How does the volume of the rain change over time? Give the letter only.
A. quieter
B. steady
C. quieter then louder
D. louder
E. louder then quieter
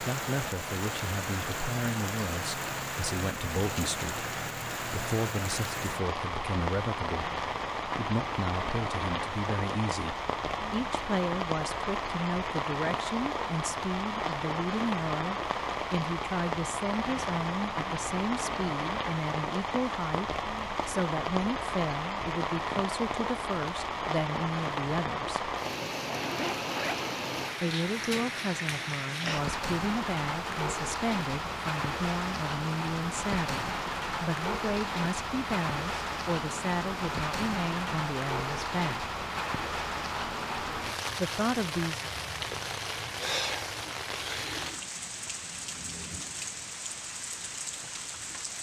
B.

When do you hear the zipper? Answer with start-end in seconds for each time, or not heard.
26.2-27.1.